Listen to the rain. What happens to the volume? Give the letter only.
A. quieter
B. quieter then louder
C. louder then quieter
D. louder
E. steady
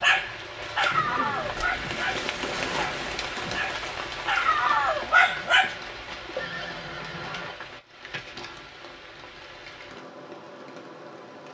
A.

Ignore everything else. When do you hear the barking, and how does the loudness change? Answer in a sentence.
The barking can be heard from 0.0 to 5.8 s, getting quieter then louder.